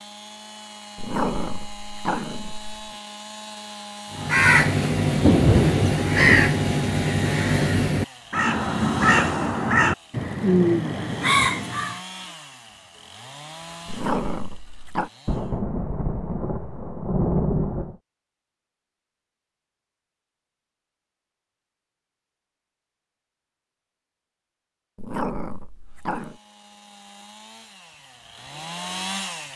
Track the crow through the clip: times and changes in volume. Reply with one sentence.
You can hear the crow from 4.2 to 12.0 s, at a steady volume.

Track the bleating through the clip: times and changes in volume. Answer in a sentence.
The bleating can't be heard in this clip.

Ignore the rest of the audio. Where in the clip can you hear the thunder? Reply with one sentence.
The thunder can be heard from 5.2 to 6.5 s and from 15.2 to 17.9 s.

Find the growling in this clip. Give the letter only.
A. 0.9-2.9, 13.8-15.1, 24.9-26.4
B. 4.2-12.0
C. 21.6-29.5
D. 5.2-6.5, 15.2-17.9
A.